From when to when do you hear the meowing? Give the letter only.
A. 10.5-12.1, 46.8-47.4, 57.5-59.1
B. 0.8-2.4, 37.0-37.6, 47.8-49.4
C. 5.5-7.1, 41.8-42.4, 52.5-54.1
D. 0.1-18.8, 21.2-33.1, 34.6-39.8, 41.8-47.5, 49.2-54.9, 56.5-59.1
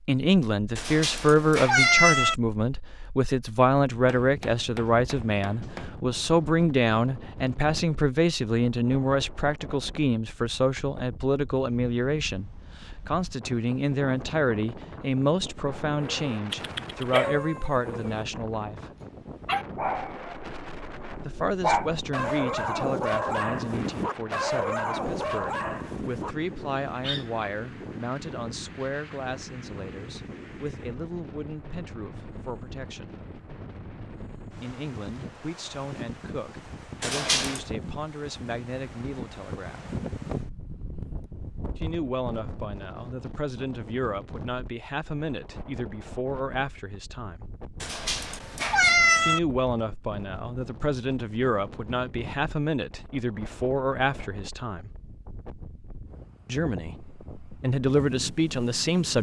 B.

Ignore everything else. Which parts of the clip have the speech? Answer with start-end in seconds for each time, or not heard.
0.1-18.8, 21.2-33.1, 34.6-39.8, 41.8-47.5, 49.2-54.9, 56.5-59.1.